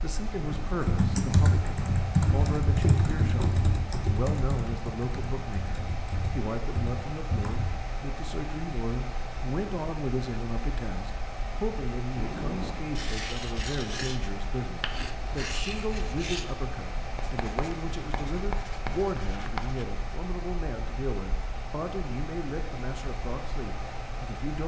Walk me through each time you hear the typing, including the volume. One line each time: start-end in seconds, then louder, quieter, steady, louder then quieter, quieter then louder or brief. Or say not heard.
0.4-7.7 quieter.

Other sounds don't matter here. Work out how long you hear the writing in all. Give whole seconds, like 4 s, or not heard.
8 s.